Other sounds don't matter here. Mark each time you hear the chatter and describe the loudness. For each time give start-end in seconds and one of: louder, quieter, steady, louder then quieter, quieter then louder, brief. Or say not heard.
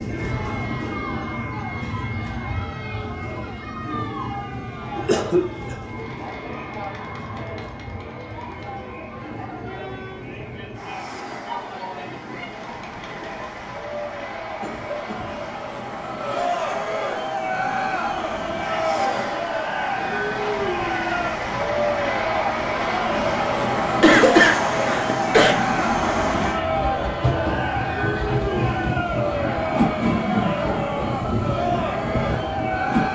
0.1-33.1 louder.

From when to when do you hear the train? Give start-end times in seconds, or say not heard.
0.0-33.1.